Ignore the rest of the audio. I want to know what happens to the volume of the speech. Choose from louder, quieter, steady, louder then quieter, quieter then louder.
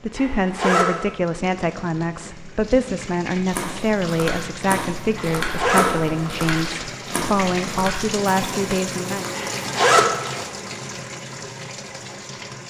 steady.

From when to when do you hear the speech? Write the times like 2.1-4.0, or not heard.
0.0-9.3.